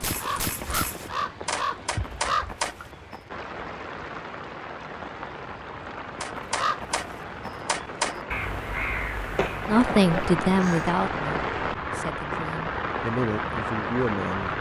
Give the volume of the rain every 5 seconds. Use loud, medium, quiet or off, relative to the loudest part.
medium, medium, loud.